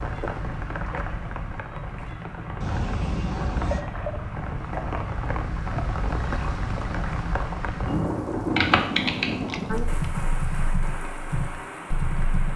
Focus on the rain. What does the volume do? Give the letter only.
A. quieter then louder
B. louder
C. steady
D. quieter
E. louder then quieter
E.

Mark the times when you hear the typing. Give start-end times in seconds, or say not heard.
8.4-12.5.